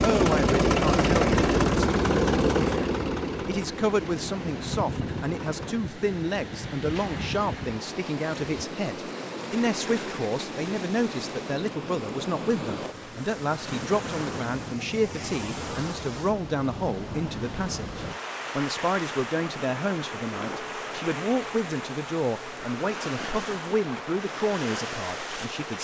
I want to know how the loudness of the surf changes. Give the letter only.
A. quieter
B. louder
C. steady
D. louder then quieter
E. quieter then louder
C.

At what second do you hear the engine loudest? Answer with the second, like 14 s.
1 s.